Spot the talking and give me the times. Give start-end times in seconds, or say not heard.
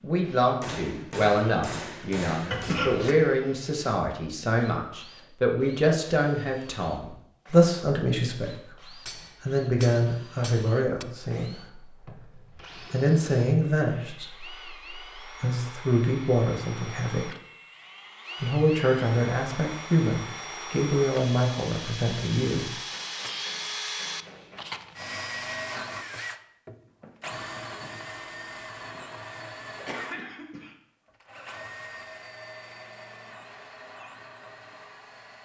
0.0-17.3, 18.4-22.8.